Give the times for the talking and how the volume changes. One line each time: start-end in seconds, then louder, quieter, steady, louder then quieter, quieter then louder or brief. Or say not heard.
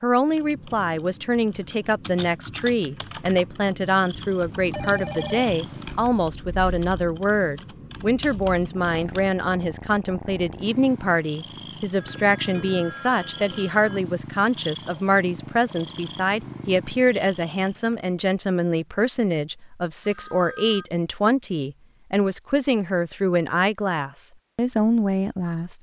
0.0-25.7 steady.